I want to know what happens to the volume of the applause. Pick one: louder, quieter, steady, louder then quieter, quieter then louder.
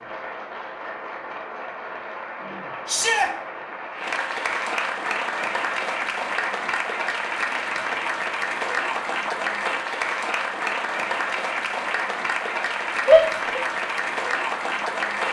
louder.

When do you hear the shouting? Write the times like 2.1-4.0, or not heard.
2.9-3.3, 13.1-13.7.